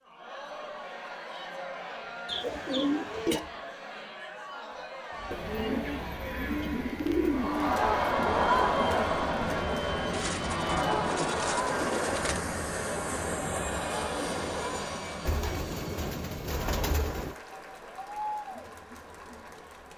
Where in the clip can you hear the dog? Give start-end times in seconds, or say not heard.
not heard.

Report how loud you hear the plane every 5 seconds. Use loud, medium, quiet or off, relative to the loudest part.
off, medium, loud, medium.